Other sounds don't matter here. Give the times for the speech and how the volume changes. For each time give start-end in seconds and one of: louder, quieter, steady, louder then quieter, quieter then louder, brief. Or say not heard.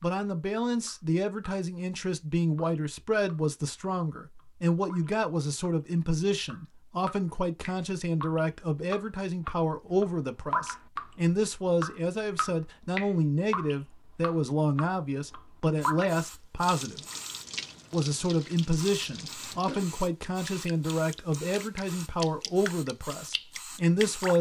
0.0-17.0 steady
17.9-24.3 steady.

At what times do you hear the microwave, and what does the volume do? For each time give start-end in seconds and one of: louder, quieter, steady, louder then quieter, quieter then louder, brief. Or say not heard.
not heard.